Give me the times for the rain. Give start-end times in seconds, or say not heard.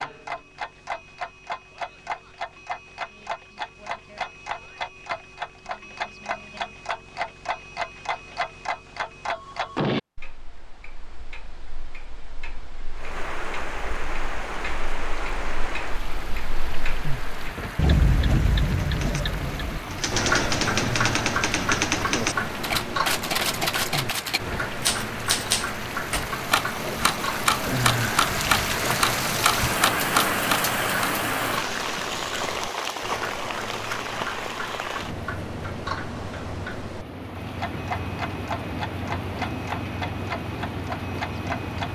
12.9-41.9.